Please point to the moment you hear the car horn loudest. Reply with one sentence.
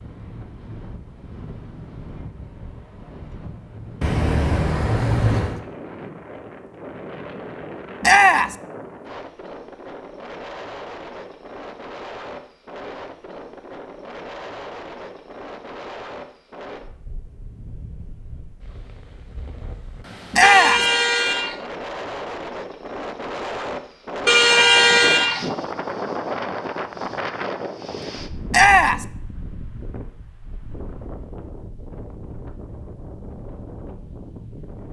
The volume of the car horn peaks at 25 seconds.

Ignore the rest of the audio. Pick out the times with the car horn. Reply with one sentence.
You can hear the car horn from 4.0 to 5.6 s, from 20.4 to 21.6 s and from 24.2 to 25.4 s.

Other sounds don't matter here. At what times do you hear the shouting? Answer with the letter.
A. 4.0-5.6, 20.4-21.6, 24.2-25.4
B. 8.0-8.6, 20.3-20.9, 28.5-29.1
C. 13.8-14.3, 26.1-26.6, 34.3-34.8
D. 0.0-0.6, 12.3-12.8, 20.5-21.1
B.